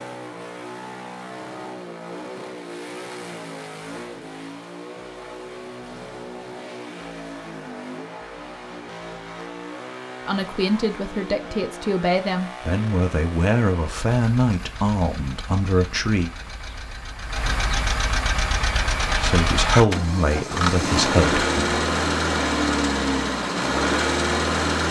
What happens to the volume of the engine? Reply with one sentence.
The loudness of the engine goes up.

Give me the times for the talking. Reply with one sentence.
The talking can be heard from 10.2 to 16.3 s and from 19.1 to 21.8 s.